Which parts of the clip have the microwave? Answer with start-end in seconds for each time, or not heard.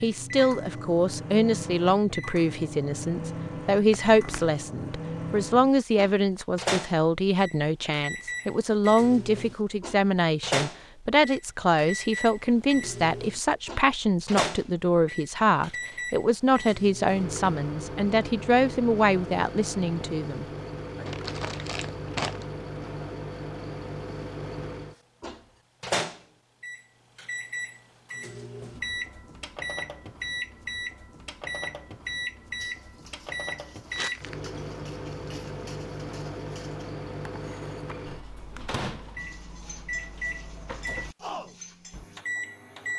0.0-42.9.